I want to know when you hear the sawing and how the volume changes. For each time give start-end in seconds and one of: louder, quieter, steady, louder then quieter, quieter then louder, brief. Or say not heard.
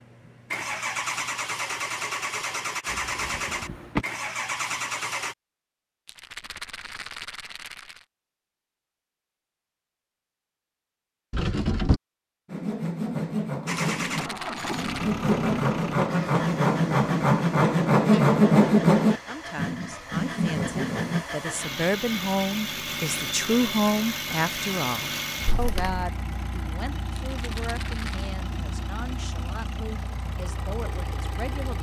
12.4-21.2 louder then quieter.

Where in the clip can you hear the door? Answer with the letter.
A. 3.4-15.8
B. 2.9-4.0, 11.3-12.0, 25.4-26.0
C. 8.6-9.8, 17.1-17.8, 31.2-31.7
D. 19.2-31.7
B.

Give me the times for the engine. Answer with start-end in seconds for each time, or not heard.
0.0-5.3, 13.7-31.7.